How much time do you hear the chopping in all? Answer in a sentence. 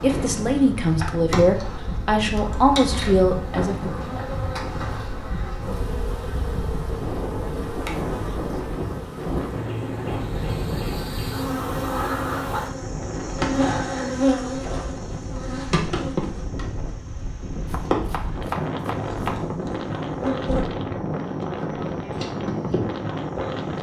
The chopping can be heard for 2 seconds in total.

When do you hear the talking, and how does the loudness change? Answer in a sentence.
You can hear the talking from 0.0 to 4.1 s, at a steady volume.